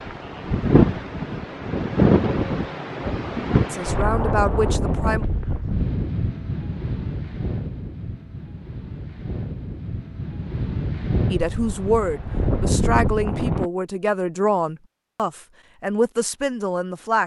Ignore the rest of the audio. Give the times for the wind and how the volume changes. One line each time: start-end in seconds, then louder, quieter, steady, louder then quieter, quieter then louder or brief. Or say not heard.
0.0-13.7 quieter then louder.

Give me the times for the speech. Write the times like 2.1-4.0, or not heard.
3.7-5.2, 11.3-17.2.